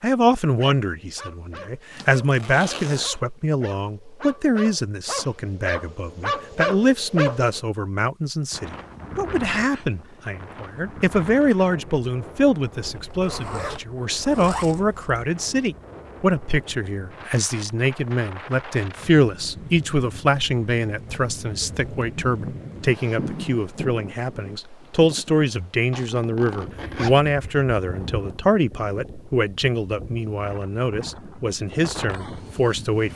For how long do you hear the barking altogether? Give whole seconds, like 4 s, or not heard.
7 s.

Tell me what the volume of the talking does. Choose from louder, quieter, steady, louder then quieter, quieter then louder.
steady.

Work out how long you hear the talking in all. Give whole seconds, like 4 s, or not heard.
33 s.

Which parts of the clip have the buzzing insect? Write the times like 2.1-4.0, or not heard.
not heard.